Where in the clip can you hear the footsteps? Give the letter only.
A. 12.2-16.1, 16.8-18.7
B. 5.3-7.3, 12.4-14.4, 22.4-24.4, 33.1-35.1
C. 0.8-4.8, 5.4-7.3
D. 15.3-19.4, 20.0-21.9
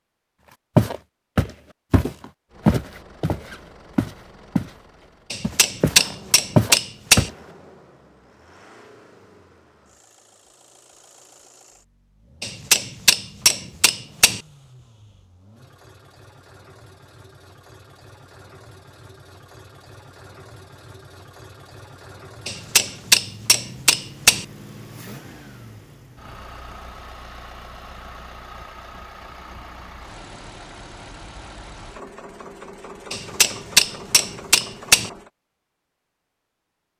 C.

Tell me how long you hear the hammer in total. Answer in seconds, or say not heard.
8 s.